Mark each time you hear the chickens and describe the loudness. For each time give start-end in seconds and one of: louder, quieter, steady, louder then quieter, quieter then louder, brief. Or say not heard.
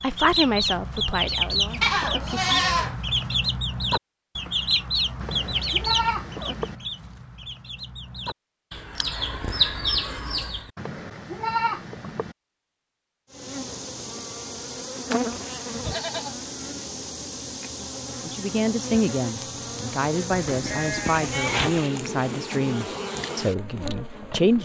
0.0-10.7 quieter then louder.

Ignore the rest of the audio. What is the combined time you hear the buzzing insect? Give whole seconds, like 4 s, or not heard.
11 s.